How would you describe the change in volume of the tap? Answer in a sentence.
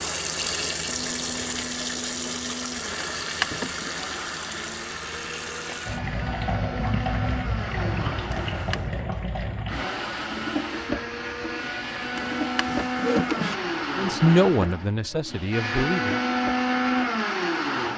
The loudness of the tap goes down.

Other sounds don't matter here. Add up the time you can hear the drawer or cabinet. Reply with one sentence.
You can hear the drawer or cabinet for 3 seconds altogether.